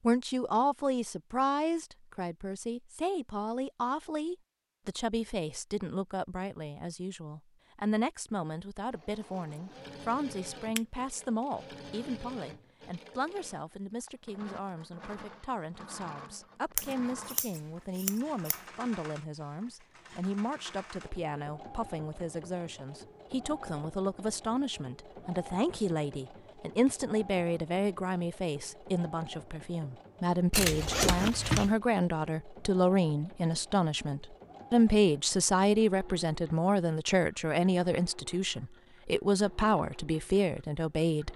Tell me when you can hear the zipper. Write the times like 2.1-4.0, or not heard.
30.8-31.4.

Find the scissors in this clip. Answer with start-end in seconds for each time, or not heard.
16.8-18.6, 30.5-31.8.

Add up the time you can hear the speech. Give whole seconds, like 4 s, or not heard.
41 s.